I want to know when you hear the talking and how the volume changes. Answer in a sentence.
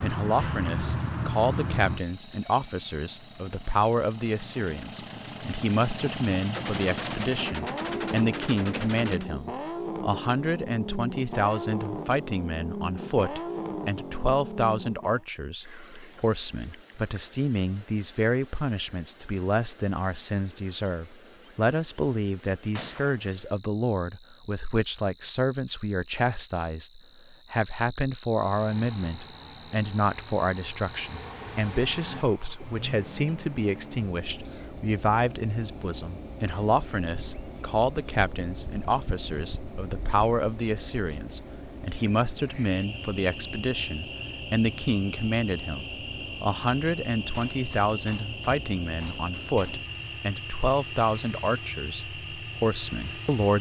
You can hear the talking from 0.0 to 53.5 s, at a steady volume.